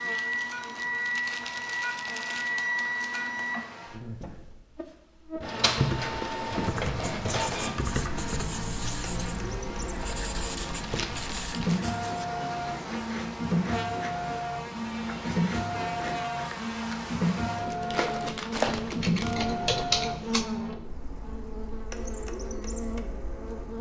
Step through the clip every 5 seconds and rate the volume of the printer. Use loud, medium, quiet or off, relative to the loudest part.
loud, loud, loud, loud, medium.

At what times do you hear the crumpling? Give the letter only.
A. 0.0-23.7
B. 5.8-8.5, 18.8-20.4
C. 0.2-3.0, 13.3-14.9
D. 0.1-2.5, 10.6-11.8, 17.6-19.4
D.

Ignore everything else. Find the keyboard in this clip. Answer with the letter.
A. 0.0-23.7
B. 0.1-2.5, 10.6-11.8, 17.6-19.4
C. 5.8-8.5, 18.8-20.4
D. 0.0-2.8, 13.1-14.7
C.